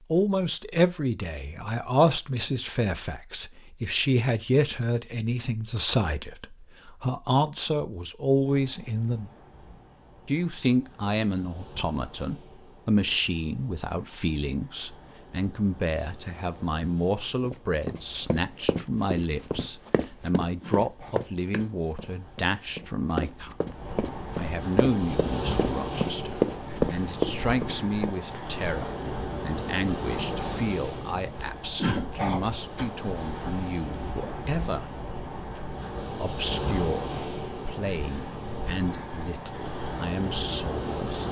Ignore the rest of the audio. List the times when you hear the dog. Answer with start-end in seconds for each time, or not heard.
not heard.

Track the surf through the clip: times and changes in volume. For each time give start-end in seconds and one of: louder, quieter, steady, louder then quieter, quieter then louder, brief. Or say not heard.
8.4-41.2 louder.